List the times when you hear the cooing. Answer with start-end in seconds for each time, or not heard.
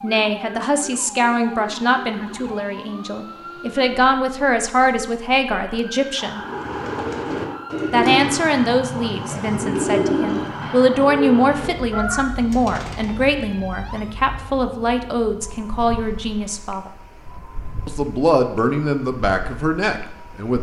6.3-13.3.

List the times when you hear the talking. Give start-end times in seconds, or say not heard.
0.0-6.4, 7.9-16.9, 17.9-20.5.